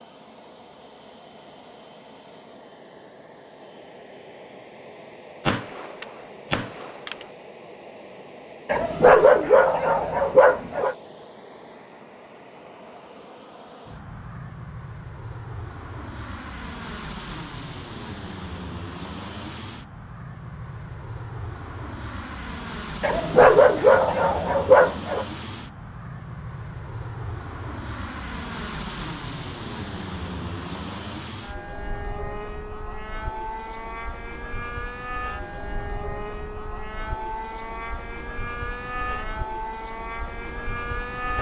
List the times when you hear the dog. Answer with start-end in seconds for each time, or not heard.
8.7-10.9, 23.0-25.2.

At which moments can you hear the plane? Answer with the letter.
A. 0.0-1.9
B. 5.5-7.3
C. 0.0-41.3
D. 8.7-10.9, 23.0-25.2
C.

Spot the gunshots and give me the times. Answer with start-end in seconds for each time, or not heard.
5.5-7.3.